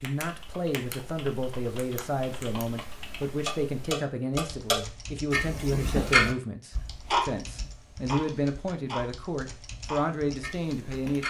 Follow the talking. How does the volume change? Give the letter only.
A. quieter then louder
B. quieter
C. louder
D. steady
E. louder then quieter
D.